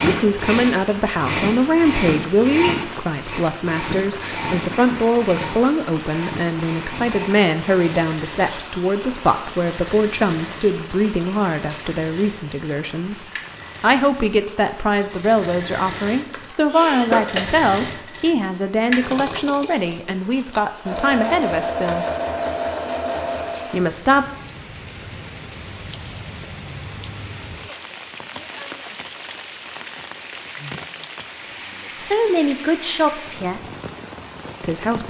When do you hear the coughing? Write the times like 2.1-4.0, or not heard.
16.3-17.4.